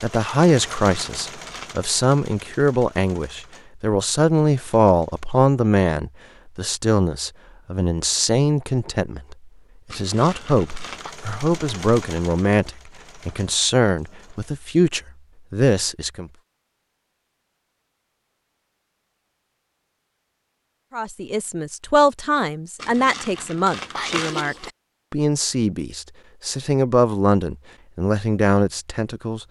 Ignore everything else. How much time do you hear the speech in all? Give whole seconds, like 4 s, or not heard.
25 s.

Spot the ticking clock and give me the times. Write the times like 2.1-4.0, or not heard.
not heard.